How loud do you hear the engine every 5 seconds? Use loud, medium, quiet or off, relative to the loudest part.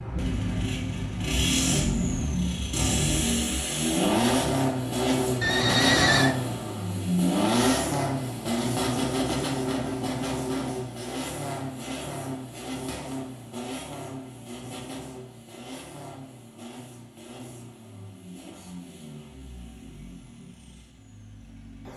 loud, loud, medium, quiet, quiet.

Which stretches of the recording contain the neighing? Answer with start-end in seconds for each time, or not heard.
5.4-6.3.